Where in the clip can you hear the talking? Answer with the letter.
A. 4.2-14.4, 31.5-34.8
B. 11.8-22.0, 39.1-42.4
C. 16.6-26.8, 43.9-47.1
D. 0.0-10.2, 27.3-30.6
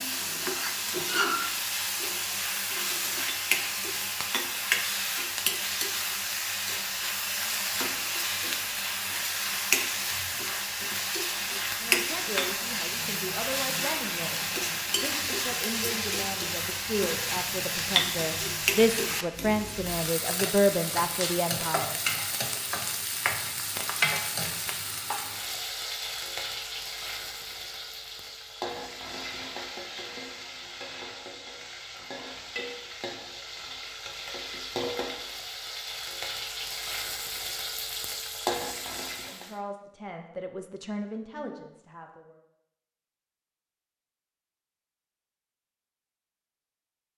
B.